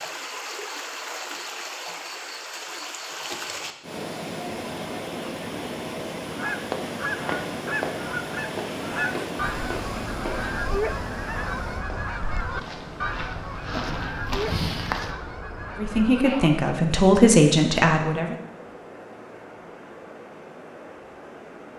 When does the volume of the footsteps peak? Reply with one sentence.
The volume of the footsteps peaks at 15 seconds.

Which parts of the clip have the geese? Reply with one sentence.
You can hear the geese from 6.2 to 16.7 s.